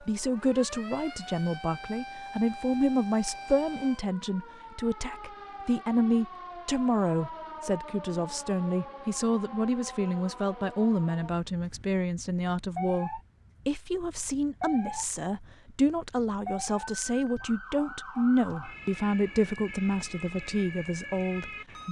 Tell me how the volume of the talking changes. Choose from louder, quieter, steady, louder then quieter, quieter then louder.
steady.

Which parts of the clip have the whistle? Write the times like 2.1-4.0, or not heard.
not heard.